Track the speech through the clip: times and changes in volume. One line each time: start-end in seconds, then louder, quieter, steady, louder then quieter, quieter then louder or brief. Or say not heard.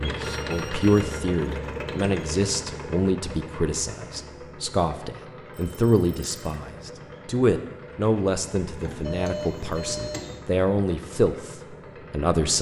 0.0-12.5 steady.